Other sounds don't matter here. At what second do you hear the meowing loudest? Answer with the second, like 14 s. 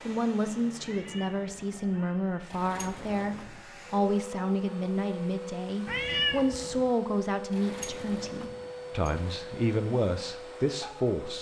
6 s.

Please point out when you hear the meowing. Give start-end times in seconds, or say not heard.
0.8-2.2, 5.8-6.9.